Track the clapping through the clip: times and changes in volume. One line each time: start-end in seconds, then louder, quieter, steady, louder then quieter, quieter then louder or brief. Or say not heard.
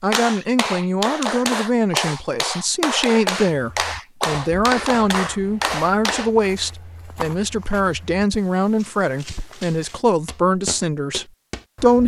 0.1-6.3 steady.